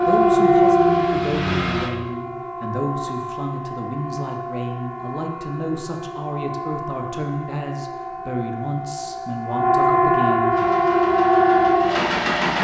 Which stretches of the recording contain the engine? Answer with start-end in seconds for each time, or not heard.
0.0-1.9, 10.5-12.6.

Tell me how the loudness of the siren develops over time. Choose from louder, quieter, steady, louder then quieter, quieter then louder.
quieter then louder.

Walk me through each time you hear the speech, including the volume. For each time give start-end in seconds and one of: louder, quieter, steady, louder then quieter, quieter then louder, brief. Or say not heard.
0.0-10.6 steady.